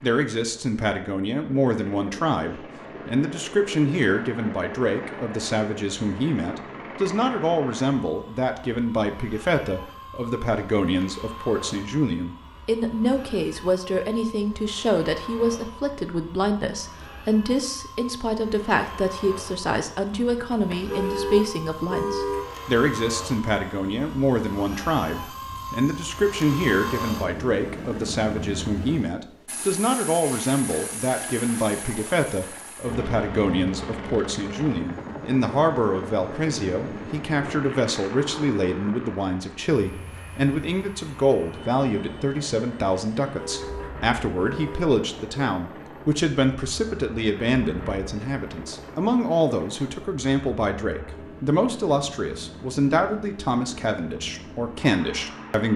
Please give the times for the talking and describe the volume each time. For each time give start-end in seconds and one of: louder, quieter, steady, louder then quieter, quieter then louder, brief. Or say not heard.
0.0-55.7 steady.